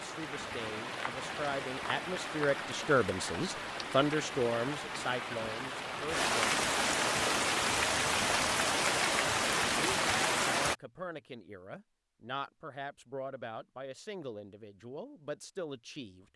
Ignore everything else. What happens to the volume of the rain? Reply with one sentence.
The loudness of the rain goes up.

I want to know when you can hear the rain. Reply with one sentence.
You can hear the rain from 0.0 to 10.8 s.